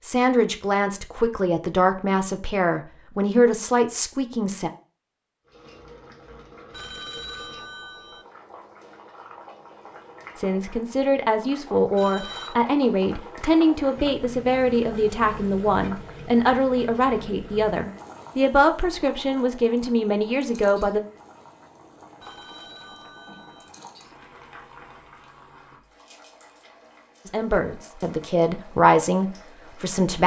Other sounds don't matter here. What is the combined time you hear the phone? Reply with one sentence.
You can hear the phone for 4 seconds altogether.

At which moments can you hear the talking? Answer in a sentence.
The talking can be heard from 0.0 to 4.7 s, from 10.3 to 21.0 s and from 27.2 to 30.2 s.